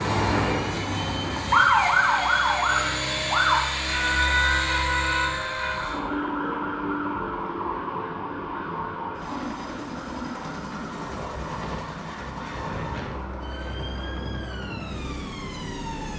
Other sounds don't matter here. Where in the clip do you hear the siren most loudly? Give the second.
2 s.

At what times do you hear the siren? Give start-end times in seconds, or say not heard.
0.0-16.1.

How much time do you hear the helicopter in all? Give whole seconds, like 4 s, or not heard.
16 s.